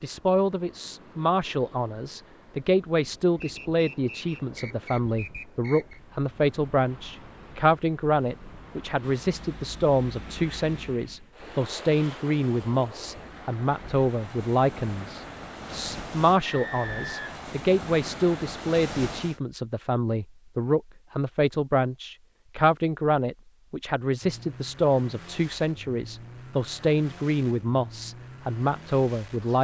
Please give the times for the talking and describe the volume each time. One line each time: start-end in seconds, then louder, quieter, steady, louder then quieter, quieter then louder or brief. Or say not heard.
0.0-29.5 steady.